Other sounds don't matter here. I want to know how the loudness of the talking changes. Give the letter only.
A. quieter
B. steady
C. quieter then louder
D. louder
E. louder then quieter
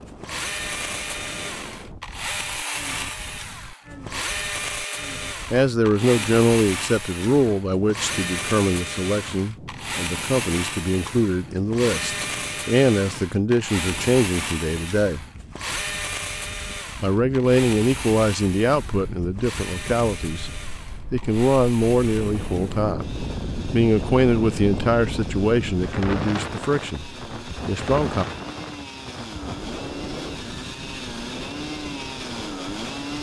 B.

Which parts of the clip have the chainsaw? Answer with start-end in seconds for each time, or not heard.
0.1-33.1.